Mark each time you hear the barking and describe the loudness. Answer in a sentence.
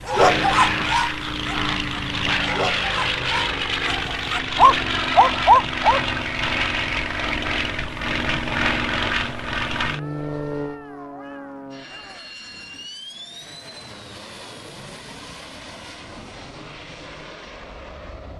You can hear the barking from 0.1 to 6.0 s, getting quieter then louder.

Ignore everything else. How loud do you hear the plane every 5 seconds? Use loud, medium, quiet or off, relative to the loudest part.
loud, loud, medium, quiet.